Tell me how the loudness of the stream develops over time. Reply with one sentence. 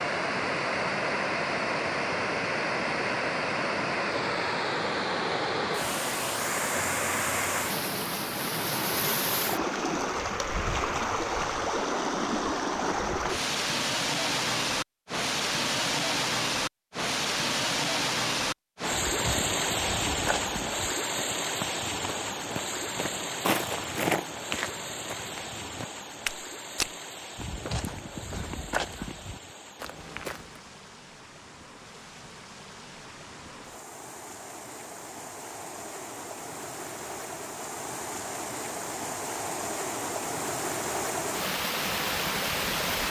The volume of the stream goes down, then up.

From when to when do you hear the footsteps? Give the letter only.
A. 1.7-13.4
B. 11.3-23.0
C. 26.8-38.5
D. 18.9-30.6
D.